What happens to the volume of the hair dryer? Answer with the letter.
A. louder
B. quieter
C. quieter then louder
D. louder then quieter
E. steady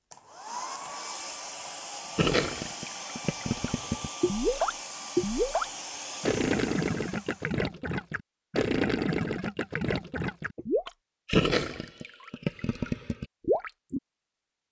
E.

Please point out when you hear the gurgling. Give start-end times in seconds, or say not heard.
2.1-14.0.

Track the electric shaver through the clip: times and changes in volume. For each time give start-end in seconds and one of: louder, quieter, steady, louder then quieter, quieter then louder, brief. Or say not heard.
not heard.